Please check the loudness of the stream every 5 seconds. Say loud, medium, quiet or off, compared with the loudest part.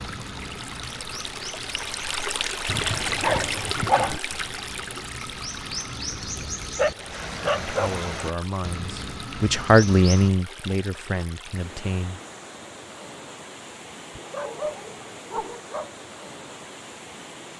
loud, medium, medium, medium.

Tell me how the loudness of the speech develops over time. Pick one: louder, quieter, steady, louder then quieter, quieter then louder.
louder then quieter.